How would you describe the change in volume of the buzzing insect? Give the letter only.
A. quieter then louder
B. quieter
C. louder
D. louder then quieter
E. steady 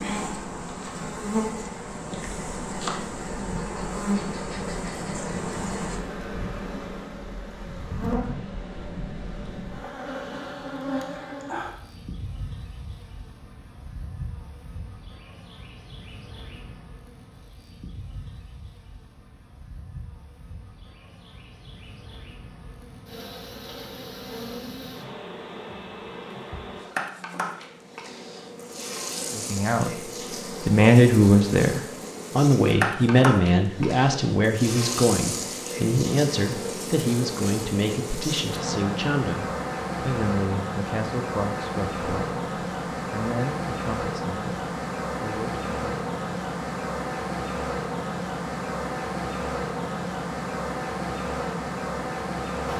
A.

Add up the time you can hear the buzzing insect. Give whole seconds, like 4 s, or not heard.
53 s.